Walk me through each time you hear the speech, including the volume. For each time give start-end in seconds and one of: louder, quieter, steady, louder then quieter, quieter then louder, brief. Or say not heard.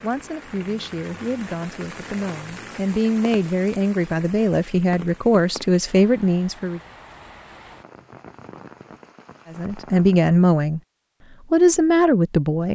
0.0-6.8 louder
9.5-10.8 brief
11.5-12.7 brief.